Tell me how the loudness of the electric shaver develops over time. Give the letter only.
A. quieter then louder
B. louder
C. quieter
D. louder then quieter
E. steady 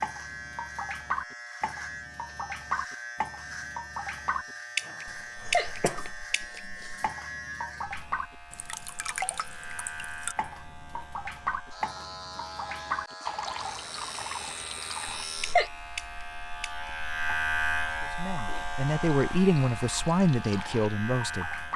B.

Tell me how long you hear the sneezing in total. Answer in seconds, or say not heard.
3 s.